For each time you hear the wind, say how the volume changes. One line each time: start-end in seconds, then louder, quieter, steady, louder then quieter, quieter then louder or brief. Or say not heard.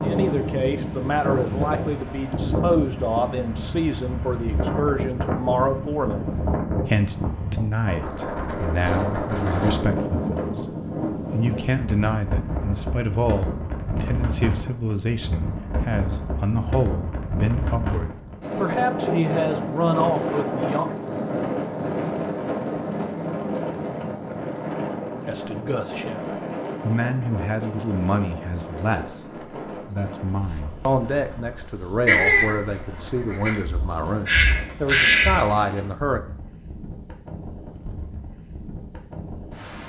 0.0-39.8 quieter.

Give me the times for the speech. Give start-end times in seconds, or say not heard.
0.0-20.9, 25.2-36.2.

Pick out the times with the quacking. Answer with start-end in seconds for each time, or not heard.
32.0-35.6.